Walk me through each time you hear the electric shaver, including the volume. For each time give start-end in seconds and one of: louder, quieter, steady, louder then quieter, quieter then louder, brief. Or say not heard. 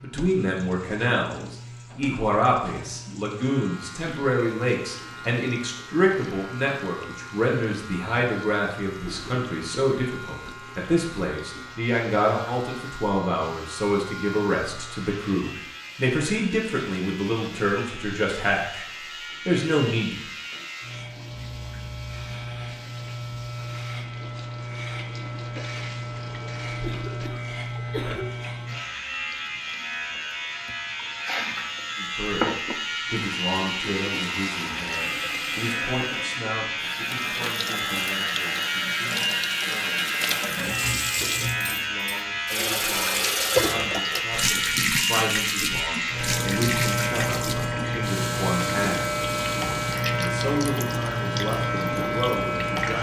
0.0-52.9 louder.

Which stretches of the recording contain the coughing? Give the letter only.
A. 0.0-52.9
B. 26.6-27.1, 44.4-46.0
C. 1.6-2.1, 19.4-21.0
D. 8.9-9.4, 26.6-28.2
D.